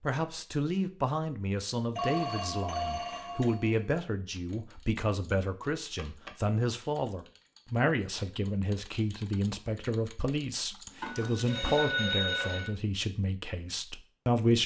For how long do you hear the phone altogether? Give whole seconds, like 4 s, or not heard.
4 s.